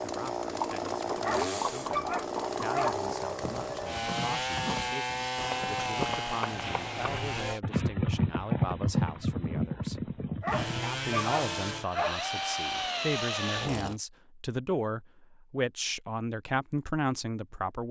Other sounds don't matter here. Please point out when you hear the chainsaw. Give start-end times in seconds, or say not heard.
0.0-7.6, 10.5-14.0.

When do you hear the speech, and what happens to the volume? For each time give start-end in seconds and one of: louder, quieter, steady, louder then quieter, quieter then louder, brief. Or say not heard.
0.0-17.8 louder.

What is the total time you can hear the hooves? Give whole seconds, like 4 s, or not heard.
10 s.